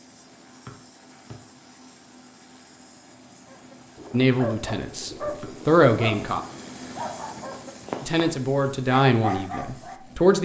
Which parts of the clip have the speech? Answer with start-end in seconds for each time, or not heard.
4.1-6.4, 8.0-10.3.